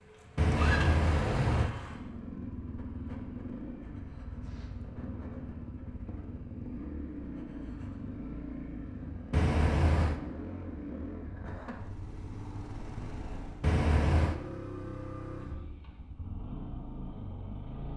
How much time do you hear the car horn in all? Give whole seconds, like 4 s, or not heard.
3 s.